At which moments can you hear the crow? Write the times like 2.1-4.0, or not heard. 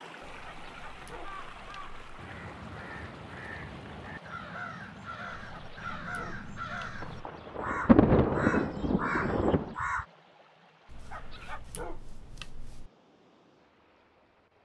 1.1-10.1.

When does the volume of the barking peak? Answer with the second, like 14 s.
12 s.